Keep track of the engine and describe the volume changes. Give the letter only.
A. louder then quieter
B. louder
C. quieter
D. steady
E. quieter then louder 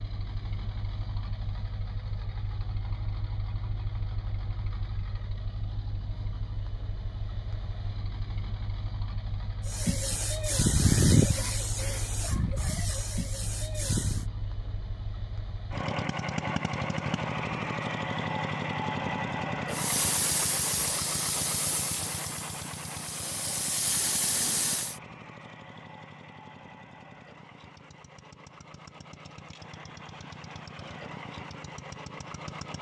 A.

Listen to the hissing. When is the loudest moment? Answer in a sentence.
The loudest moment of the hissing is at 11 seconds.